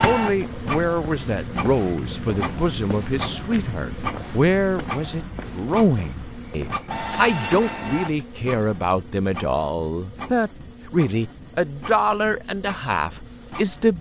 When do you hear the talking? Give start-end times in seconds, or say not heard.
0.0-13.9.